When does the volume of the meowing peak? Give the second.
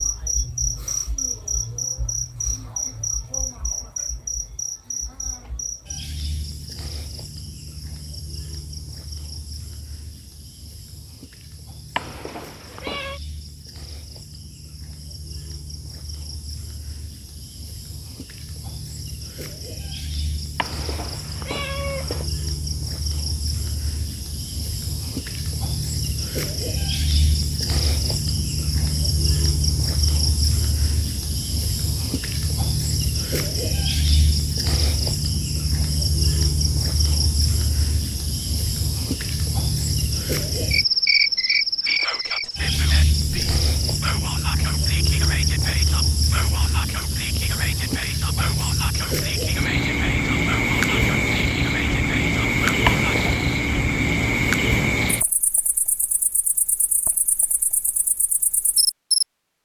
53 s.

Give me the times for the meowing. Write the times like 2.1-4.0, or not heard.
11.9-13.2, 20.6-22.2, 52.9-53.5.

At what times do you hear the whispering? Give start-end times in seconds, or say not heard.
41.8-53.2.